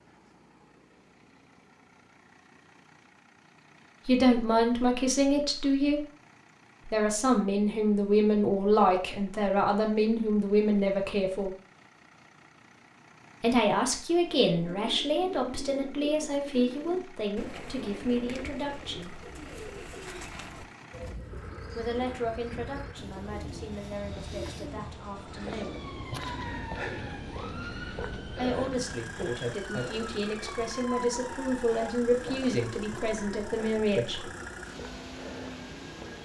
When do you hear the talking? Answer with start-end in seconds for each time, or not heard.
4.0-6.0, 6.8-11.5, 13.4-19.2, 21.8-25.9, 28.4-34.3.